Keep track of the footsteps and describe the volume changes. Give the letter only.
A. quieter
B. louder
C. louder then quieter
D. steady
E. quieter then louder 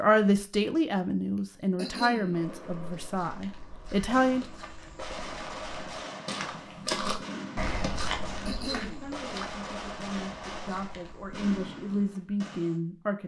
C.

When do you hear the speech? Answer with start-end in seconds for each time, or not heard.
0.0-4.5, 8.4-13.2.